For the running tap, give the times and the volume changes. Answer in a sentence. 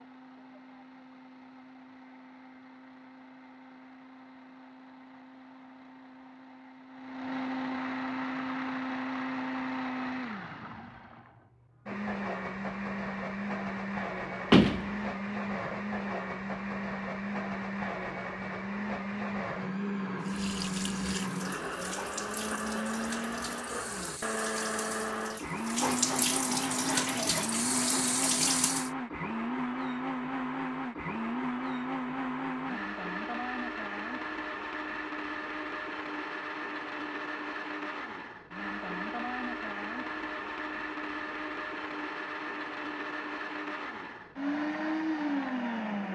You can hear the running tap from 20.2 to 28.9 s, getting louder.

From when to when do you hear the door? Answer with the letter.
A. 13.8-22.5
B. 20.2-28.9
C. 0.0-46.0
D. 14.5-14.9
D.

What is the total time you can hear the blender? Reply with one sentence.
You can hear the blender for 46 seconds altogether.